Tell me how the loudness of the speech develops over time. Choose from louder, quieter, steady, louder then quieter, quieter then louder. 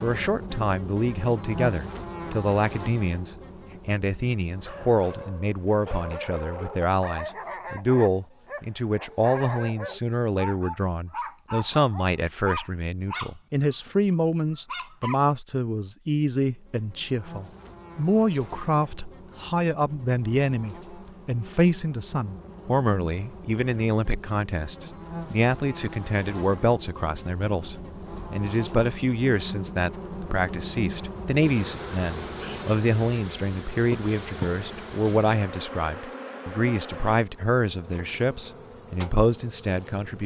steady.